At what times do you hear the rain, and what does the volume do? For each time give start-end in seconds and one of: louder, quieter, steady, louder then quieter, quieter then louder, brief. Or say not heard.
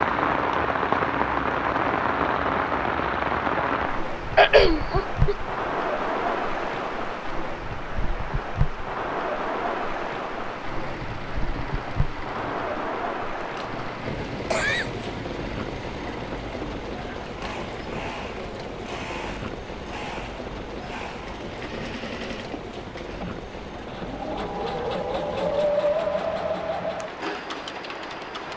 0.0-28.5 quieter.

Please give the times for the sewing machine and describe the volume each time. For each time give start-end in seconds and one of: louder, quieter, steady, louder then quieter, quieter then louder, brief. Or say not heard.
10.4-28.5 louder.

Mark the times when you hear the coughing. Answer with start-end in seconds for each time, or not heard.
4.3-5.3, 14.5-15.1.